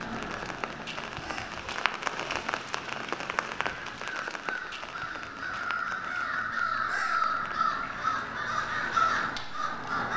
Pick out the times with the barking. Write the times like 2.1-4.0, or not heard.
not heard.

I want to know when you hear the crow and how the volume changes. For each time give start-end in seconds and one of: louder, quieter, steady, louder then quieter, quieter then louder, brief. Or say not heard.
0.0-10.1 louder.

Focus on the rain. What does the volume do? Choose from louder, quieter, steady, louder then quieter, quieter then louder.
quieter.